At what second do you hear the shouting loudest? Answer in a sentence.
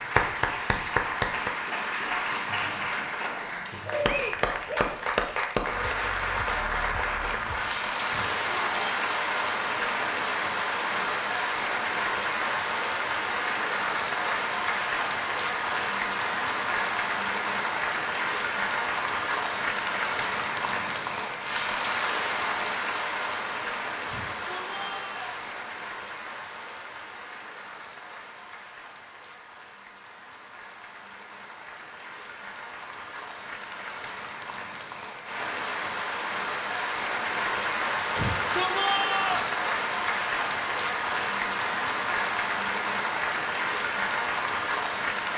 The loudest moment of the shouting is at 39 seconds.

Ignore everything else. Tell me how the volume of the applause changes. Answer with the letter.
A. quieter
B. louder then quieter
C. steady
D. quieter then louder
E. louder
D.